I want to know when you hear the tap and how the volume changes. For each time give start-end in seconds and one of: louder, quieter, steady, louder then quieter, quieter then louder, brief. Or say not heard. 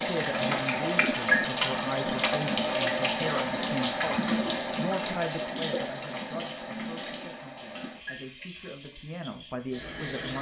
0.0-10.3 quieter.